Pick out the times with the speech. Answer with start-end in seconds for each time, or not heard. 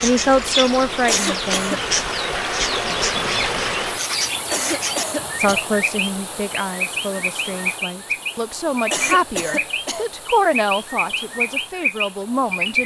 0.0-1.8, 5.3-12.8.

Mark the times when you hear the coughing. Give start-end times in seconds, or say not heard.
1.1-1.9, 4.5-5.7, 8.9-10.1.